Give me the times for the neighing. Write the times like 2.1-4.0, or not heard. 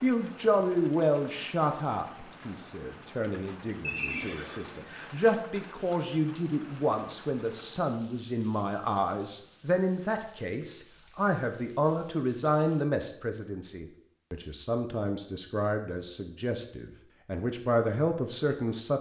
3.8-5.0.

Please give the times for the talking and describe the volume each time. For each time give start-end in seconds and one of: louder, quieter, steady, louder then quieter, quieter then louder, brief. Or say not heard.
0.0-18.9 steady.